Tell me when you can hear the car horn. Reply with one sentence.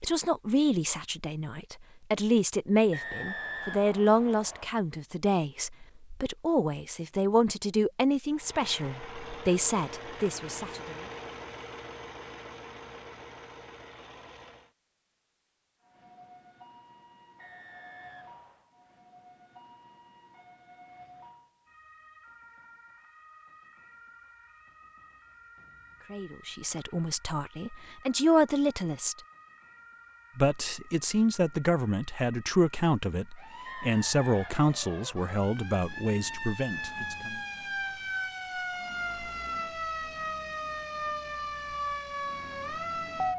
The car horn can't be heard in this clip.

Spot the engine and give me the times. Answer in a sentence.
The engine can be heard from 8.3 to 14.8 s.